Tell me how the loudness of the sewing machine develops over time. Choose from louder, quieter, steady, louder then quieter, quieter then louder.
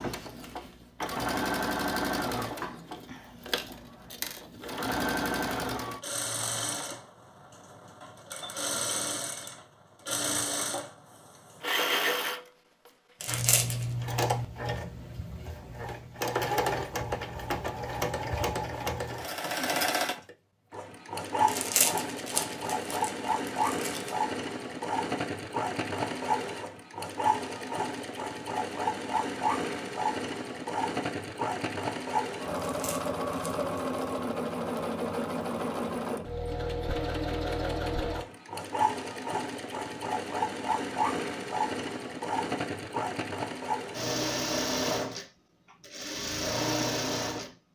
steady.